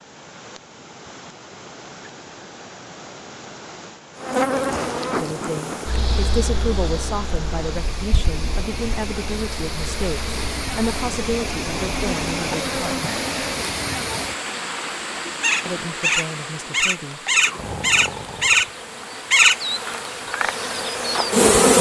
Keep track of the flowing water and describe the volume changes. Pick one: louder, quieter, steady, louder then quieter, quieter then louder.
louder then quieter.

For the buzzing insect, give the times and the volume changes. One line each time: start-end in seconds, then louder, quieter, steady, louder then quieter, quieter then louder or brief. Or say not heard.
4.2-21.7 quieter then louder.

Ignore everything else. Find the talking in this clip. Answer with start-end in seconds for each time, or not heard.
5.2-13.1, 15.7-17.2.